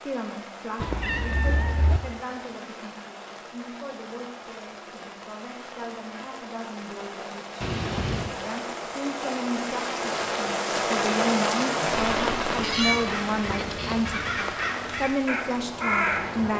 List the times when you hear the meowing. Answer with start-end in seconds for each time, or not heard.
0.8-2.0, 7.6-8.3, 12.6-14.6.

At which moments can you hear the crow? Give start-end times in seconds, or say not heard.
12.6-16.5.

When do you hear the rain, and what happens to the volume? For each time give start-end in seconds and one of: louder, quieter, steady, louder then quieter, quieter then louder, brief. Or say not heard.
0.0-16.5 louder then quieter.